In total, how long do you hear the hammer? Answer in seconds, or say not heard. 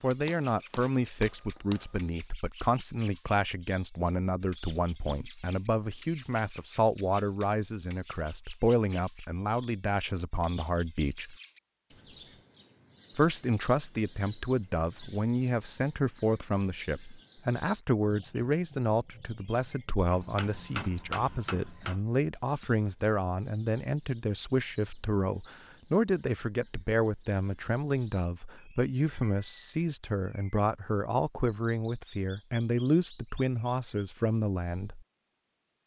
4 s.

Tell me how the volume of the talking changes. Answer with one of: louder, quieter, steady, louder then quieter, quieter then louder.
steady.